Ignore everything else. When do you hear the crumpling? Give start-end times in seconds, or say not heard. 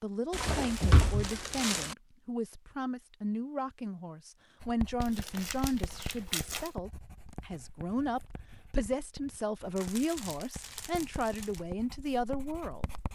0.3-1.9, 5.0-6.7, 9.8-11.6.